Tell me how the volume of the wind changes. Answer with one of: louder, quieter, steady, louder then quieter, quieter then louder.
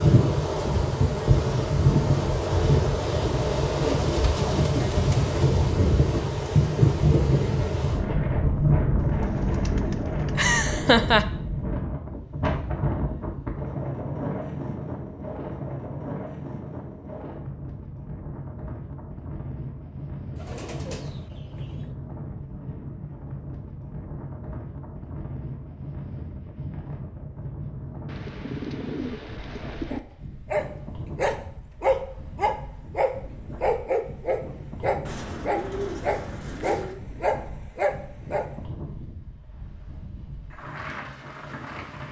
quieter.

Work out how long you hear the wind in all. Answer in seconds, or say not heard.
42 s.